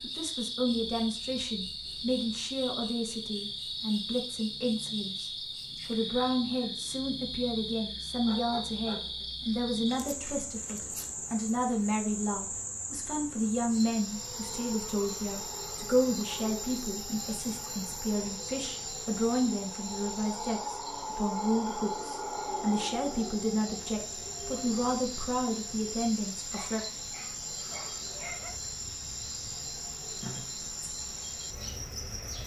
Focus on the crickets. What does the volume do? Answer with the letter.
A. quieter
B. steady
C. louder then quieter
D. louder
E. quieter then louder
B.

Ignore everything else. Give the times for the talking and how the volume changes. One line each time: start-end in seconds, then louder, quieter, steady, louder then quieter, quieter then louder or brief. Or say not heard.
0.0-26.8 steady.